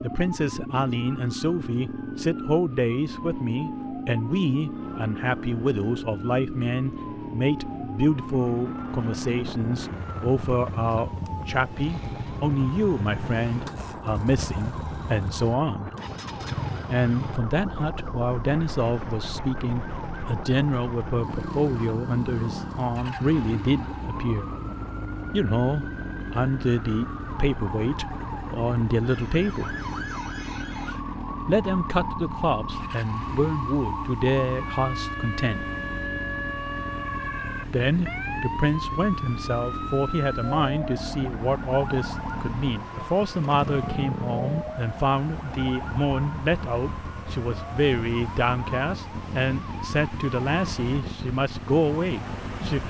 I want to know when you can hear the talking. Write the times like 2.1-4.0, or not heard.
0.0-15.9, 16.9-24.6, 25.3-29.8, 31.4-35.6, 37.6-52.8.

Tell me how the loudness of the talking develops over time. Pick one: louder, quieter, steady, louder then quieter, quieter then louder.
steady.